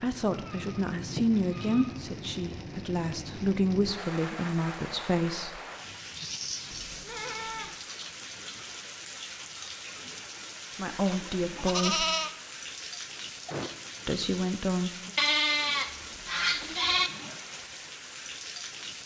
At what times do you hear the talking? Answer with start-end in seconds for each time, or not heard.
0.0-5.6, 10.8-12.1, 14.1-15.1.